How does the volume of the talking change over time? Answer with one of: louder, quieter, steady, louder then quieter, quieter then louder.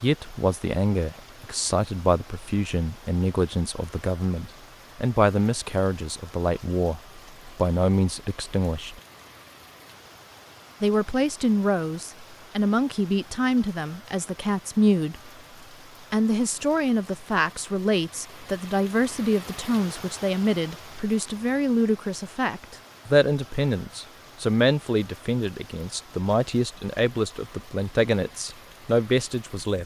steady.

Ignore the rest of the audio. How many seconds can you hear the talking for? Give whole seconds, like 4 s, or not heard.
27 s.